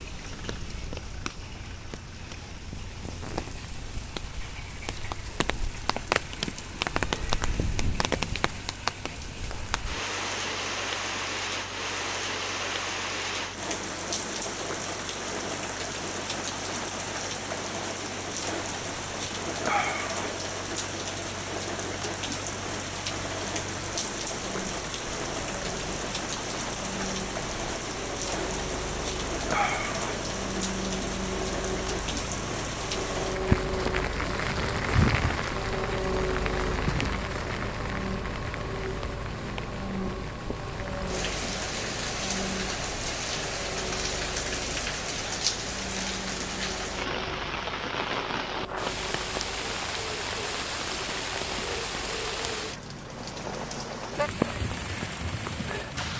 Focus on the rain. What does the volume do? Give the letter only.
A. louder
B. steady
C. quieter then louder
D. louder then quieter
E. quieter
B.